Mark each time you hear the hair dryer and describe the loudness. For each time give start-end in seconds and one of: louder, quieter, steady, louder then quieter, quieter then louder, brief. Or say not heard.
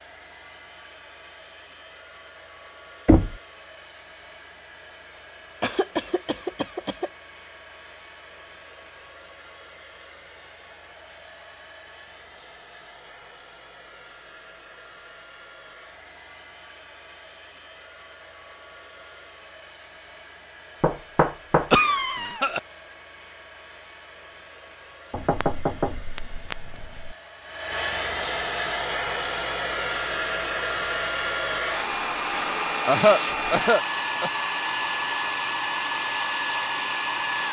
0.0-37.4 louder.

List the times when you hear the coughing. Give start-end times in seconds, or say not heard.
5.6-7.1, 21.7-22.6, 32.9-34.3.